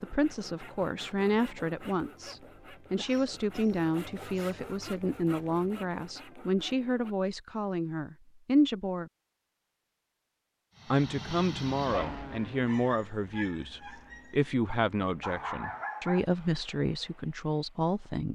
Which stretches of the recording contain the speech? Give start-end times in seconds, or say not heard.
0.0-9.1, 10.9-18.3.